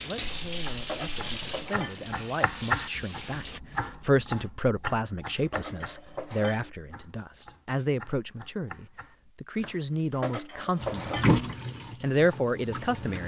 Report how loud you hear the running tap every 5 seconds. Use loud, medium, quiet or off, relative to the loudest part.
loud, off, loud.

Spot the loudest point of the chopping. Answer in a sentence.
The volume of the chopping peaks at 3 seconds.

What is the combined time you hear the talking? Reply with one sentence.
The talking can be heard for 13 seconds in total.